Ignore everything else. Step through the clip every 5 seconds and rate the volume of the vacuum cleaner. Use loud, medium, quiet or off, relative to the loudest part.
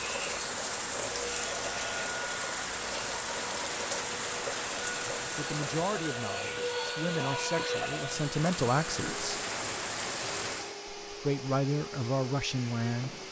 loud, loud, medium.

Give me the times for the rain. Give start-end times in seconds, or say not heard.
0.0-10.8.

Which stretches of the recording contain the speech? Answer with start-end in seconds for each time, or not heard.
5.3-9.4, 11.1-13.2.